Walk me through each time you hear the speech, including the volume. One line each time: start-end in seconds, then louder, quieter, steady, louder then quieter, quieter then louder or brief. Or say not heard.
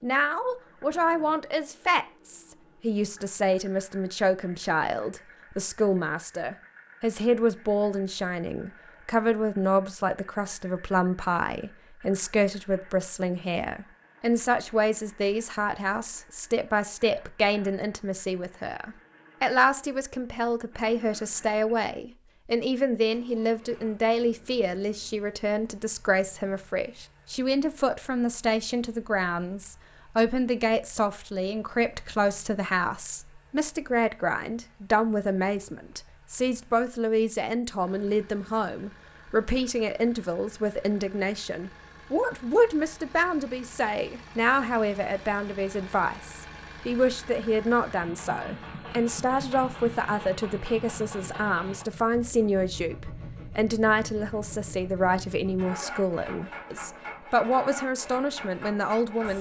0.0-59.3 steady.